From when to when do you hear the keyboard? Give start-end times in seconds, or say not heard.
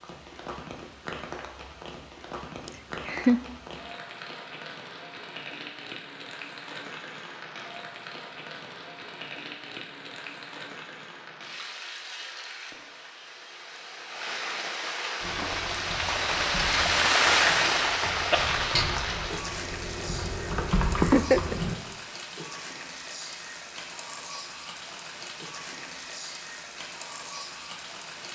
15.2-21.8.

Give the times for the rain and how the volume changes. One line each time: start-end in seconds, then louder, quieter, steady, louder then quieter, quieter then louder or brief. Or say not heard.
0.0-28.3 louder then quieter.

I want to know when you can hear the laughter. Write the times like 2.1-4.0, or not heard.
2.6-3.4, 20.9-21.6.